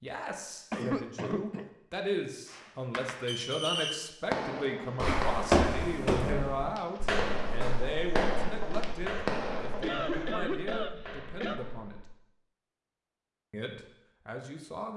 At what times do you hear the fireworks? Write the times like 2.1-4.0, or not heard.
2.5-10.2.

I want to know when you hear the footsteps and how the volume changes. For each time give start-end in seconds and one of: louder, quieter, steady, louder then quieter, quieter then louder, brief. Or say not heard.
5.0-12.1 quieter.